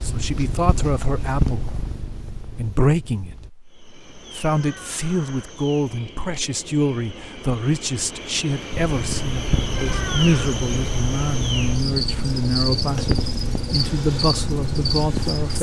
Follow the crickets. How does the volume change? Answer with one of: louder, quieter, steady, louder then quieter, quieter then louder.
louder.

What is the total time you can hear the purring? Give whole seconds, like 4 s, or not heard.
10 s.